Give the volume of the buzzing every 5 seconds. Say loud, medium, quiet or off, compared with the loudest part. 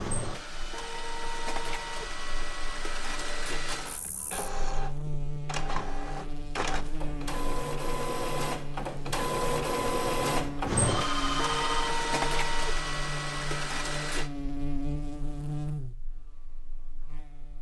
medium, loud, loud, loud.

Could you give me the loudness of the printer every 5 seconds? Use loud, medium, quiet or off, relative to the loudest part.
medium, loud, loud, off.